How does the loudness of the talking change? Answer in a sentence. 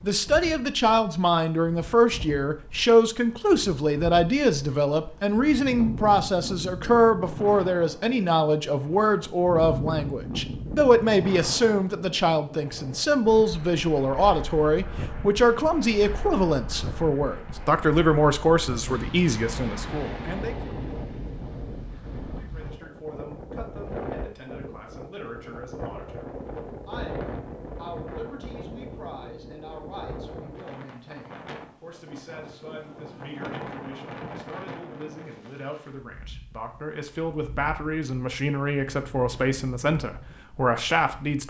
The volume of the talking goes down, then up.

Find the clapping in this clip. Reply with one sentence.
The clapping can't be heard in this clip.